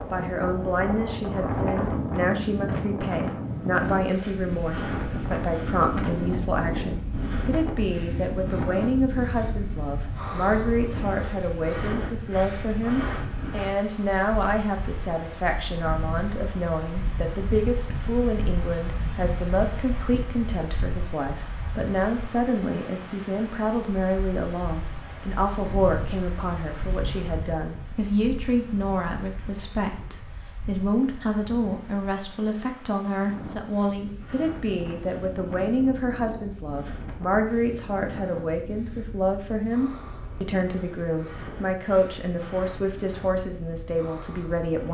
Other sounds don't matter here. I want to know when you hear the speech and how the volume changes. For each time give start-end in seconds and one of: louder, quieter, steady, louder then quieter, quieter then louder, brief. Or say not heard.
0.1-44.8 steady.